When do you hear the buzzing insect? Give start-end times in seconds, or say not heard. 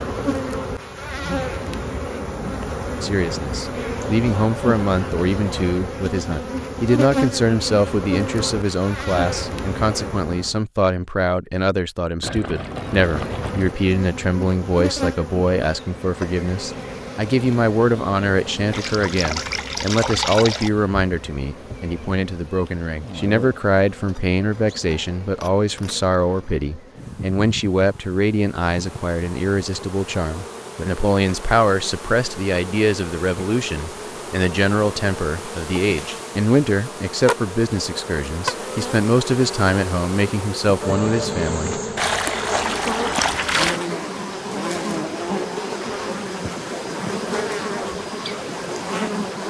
0.0-10.6, 12.7-49.4.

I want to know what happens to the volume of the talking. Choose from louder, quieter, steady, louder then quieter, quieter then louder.
steady.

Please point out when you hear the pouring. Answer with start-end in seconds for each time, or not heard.
12.2-13.8, 18.7-20.7, 42.0-43.8.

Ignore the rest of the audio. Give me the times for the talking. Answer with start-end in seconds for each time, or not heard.
3.0-41.8.